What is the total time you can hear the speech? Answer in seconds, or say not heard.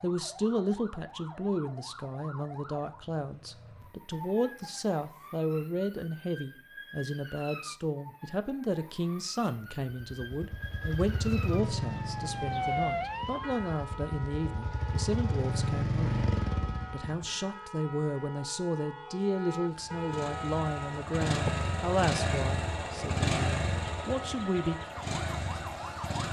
24 s.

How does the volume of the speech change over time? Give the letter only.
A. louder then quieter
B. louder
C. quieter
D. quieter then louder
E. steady
E.